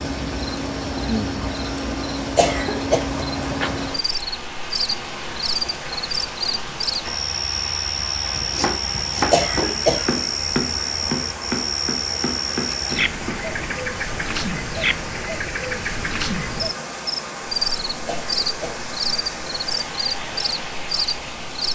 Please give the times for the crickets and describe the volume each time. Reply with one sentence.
You can hear the crickets from 0.0 to 21.6 s, at a steady volume.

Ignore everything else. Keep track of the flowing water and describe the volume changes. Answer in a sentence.
The loudness of the flowing water stays about the same.